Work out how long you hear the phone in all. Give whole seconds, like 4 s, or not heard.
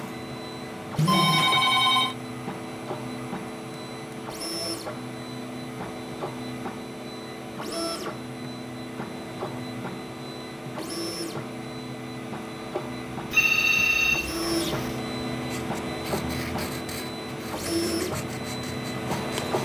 3 s.